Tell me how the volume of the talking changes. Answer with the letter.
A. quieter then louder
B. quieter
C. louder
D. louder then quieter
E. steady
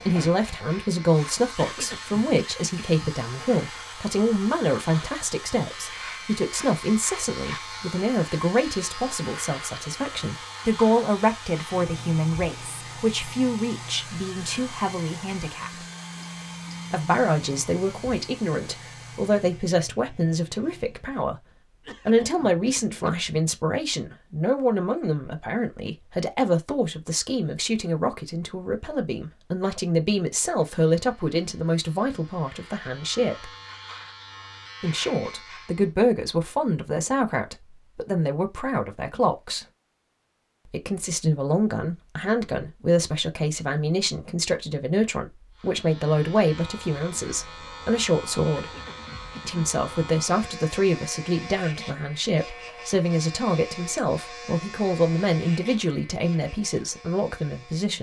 E.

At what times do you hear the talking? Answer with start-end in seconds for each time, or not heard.
0.1-15.8, 16.9-21.4, 22.1-33.5, 34.8-39.6, 40.6-48.7, 49.5-57.9.